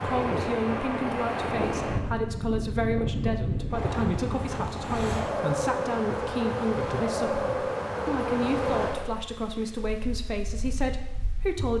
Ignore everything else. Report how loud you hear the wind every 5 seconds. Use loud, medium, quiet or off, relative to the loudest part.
loud, loud, quiet.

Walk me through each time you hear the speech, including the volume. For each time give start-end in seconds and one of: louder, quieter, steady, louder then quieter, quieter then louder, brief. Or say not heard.
0.0-11.7 steady.